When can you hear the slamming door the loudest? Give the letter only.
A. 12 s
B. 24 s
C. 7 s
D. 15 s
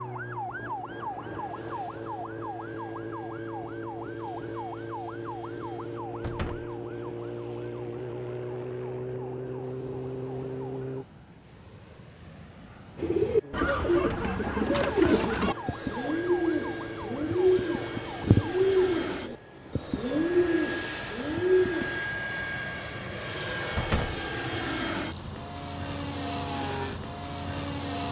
B.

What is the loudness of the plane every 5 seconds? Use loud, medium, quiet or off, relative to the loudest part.
quiet, quiet, quiet, medium, loud, loud.